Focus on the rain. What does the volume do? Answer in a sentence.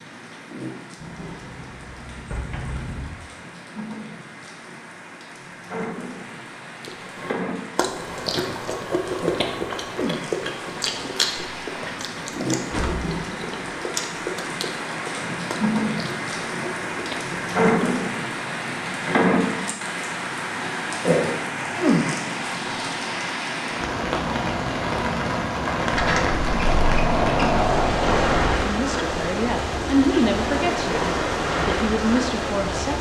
The loudness of the rain goes up.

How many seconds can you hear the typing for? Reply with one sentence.
The typing can't be heard in this clip.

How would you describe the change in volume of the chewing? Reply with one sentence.
The loudness of the chewing goes down.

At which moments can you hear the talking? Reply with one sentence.
The talking can be heard from 28.6 to 32.9 s.